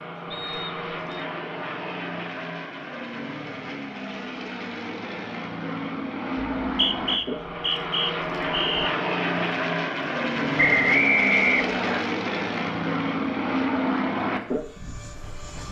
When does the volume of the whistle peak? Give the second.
11 s.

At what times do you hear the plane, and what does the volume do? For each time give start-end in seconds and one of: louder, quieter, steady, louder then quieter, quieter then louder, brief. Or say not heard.
0.0-15.6 louder.